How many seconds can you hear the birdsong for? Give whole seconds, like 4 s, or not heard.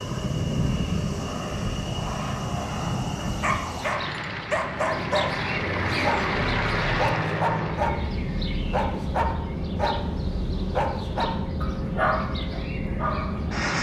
10 s.